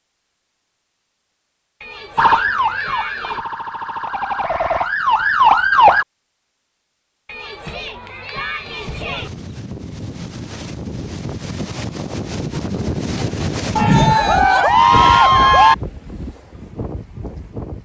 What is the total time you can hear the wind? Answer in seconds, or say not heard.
9 s.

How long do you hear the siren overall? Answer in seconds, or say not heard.
4 s.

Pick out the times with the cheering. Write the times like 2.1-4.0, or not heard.
1.8-3.5, 7.2-9.3, 13.8-15.8.